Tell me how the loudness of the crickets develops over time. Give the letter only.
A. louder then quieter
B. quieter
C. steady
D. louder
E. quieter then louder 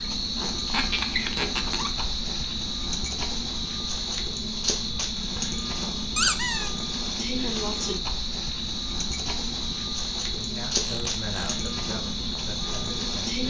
C.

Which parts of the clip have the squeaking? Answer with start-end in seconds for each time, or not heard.
0.7-2.0, 6.2-6.7, 10.8-11.6.